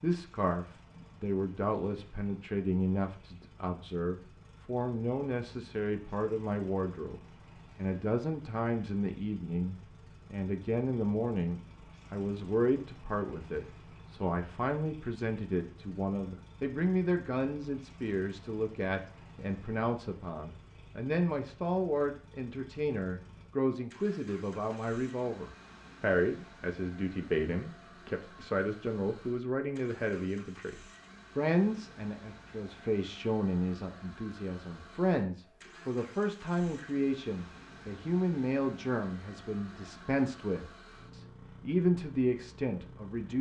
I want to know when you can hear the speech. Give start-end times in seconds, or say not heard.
0.0-30.8, 31.4-43.3.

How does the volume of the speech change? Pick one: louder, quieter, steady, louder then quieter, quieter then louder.
steady.